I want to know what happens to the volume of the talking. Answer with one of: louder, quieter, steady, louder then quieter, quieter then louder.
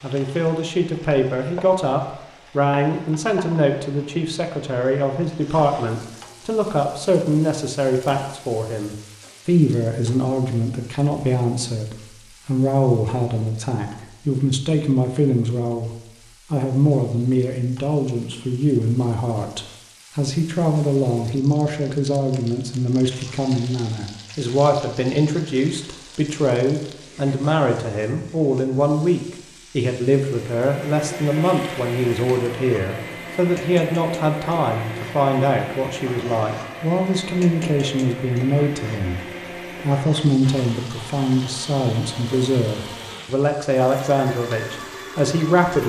steady.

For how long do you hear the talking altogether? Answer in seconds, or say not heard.
46 s.